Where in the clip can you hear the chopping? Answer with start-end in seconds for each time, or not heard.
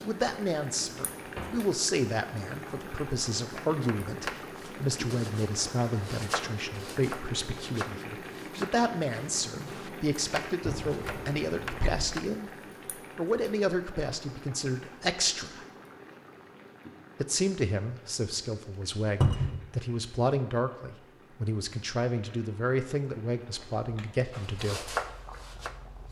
3.4-12.2, 24.3-26.0.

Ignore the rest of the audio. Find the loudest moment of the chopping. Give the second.
25 s.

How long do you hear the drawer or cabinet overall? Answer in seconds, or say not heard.
3 s.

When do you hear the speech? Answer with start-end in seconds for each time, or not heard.
0.0-12.5, 13.2-15.7, 17.2-24.9.